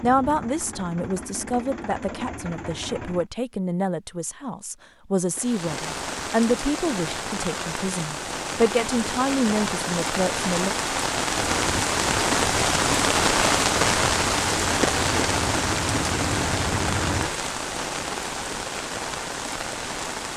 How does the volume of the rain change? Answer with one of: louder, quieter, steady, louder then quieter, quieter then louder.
louder then quieter.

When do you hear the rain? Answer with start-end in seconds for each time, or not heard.
5.3-20.3.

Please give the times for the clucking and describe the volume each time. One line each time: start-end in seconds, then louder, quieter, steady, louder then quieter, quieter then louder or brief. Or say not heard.
not heard.